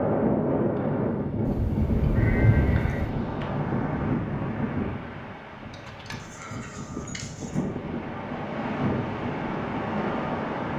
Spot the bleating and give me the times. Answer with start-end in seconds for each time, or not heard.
1.4-3.1, 5.7-7.6.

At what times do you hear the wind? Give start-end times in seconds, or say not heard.
0.0-10.7.